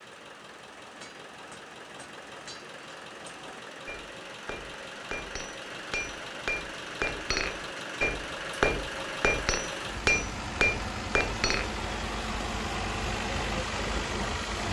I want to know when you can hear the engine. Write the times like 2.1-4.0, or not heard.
0.0-14.6.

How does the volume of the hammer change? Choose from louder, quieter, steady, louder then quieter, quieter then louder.
louder.